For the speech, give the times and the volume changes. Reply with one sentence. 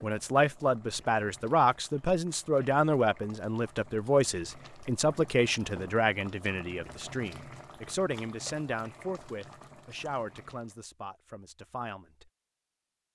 You can hear the speech from 0.0 to 12.3 s, getting quieter.